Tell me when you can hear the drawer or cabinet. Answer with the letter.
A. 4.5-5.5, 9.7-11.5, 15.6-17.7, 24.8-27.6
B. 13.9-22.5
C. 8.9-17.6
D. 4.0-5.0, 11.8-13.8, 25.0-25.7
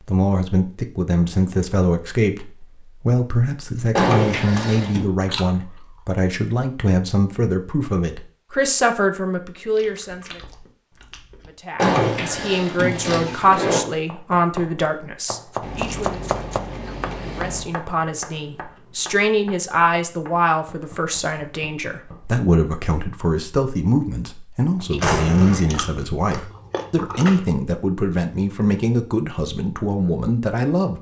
D.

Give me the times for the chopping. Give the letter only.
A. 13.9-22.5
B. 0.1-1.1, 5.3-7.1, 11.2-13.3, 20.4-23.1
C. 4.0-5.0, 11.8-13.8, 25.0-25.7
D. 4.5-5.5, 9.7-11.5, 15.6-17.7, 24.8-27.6
A.